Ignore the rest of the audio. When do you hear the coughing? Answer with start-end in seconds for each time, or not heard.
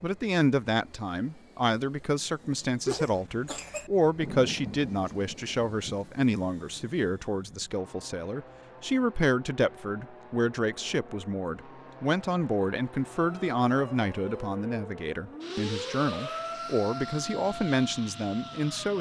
2.9-3.9.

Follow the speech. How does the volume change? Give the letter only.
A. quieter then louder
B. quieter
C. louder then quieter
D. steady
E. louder
D.